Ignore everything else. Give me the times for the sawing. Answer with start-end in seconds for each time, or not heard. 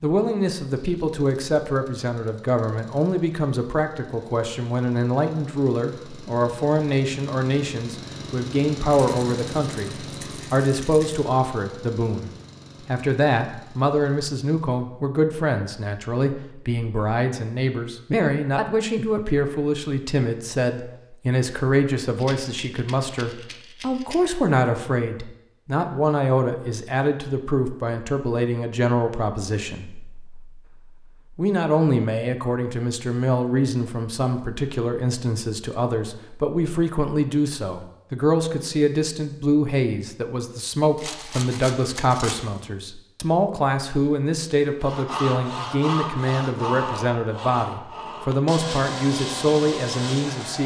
44.8-50.6.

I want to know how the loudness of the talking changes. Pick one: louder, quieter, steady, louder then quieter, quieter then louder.
steady.